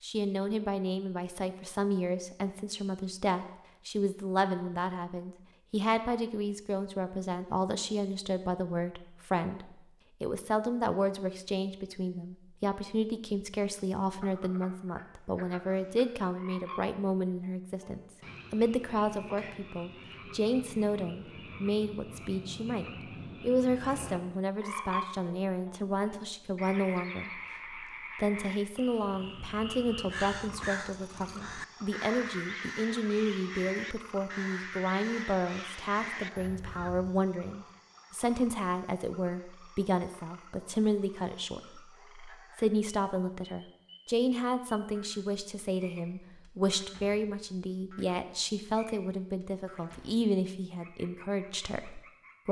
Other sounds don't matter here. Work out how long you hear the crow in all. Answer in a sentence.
You can hear the crow for 8 seconds altogether.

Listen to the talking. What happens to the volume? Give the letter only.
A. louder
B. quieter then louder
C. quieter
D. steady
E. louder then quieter
D.